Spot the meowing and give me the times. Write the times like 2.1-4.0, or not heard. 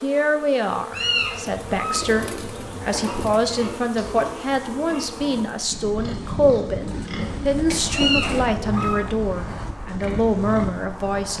0.9-2.0, 7.9-8.9.